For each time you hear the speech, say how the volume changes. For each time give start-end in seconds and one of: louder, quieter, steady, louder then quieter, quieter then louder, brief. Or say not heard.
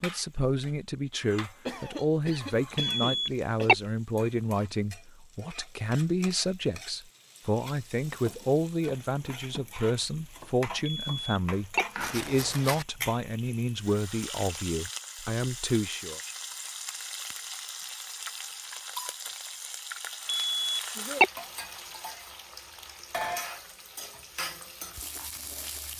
0.0-16.2 steady.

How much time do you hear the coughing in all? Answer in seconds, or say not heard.
2 s.